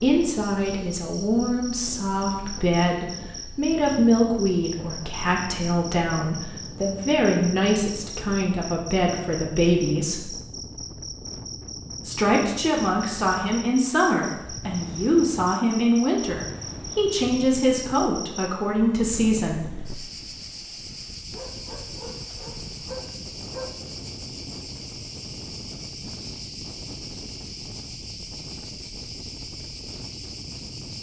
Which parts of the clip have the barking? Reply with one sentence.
The barking can be heard from 21.3 to 23.9 s.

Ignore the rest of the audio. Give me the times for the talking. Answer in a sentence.
The talking can be heard from 0.0 to 10.2 s and from 12.1 to 19.7 s.